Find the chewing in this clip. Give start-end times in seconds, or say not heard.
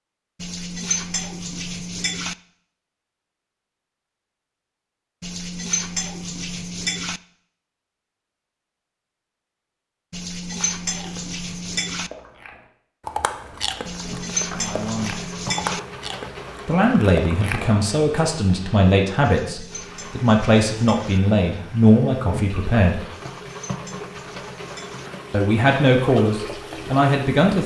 10.4-18.4.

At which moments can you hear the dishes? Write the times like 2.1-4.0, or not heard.
0.4-2.4, 5.2-7.2, 10.1-12.1, 13.8-15.8, 19.2-21.2, 23.1-25.1.